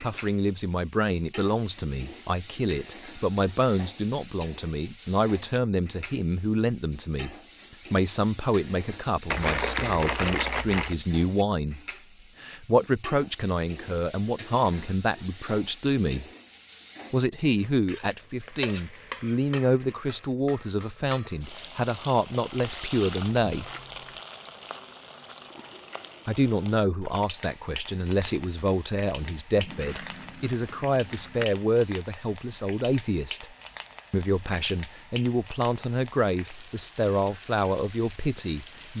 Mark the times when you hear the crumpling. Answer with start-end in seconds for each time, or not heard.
9.3-10.9, 22.6-24.2, 29.6-31.4.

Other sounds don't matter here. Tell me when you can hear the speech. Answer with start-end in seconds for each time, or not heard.
0.0-11.8, 12.4-16.2, 17.1-23.7, 26.2-33.5, 34.1-38.9.